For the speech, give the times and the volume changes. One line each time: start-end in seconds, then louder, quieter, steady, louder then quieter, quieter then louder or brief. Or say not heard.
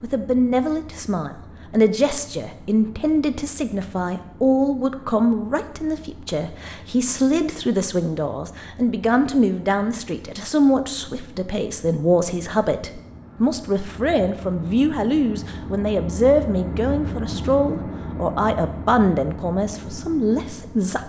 0.0-21.0 steady.